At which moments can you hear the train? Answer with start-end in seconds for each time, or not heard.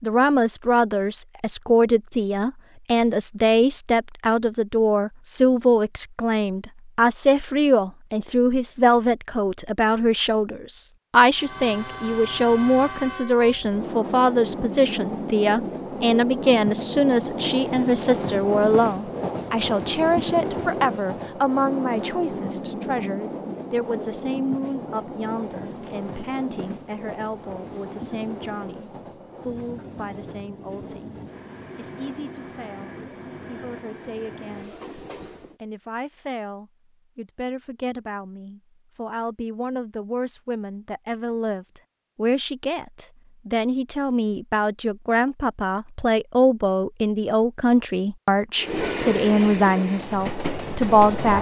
11.3-35.6, 48.5-51.3.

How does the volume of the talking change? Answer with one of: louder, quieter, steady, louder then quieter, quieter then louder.
quieter then louder.